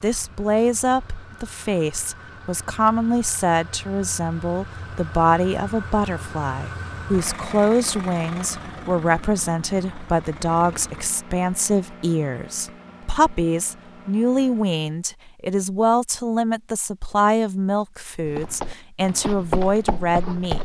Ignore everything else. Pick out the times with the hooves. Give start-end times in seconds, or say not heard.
18.2-20.5.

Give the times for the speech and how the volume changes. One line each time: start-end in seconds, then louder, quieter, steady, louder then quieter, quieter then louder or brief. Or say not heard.
0.0-20.5 steady.